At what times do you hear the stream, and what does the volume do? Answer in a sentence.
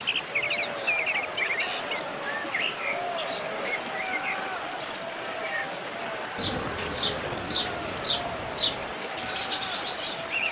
You can hear the stream from 0.0 to 10.4 s, at a steady volume.